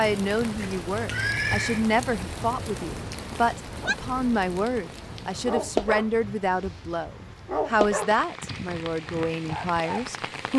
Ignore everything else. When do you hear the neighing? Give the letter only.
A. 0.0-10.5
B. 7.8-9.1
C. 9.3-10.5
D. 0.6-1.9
D.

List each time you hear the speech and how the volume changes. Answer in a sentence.
The speech can be heard from 0.0 to 10.5 s, at a steady volume.